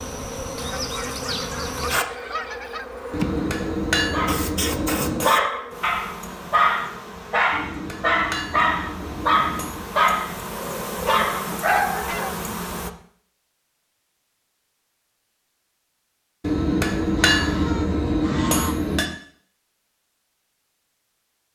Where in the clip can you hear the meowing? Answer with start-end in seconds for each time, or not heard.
not heard.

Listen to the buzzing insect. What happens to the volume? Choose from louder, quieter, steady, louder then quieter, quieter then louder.
quieter then louder.